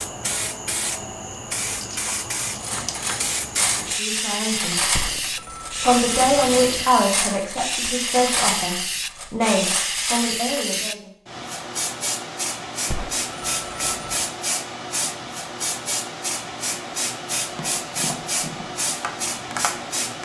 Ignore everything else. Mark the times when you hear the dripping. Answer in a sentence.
The dripping can't be heard in this clip.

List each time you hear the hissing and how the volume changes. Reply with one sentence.
The hissing can be heard from 0.0 to 20.1 s, at a steady volume.